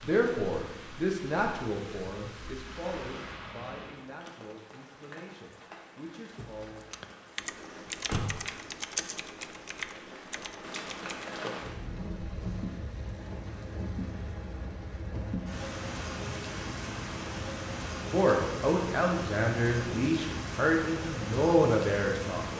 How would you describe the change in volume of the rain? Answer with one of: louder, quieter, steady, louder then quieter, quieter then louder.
louder.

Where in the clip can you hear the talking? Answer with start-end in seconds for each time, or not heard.
0.0-6.8, 18.1-22.5.